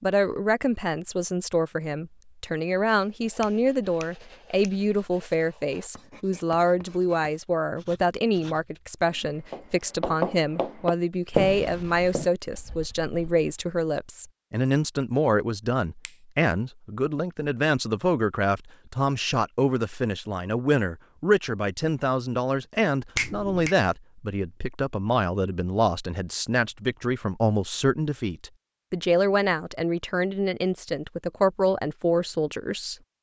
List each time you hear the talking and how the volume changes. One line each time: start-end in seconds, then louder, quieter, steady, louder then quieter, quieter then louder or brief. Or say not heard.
0.0-33.0 steady.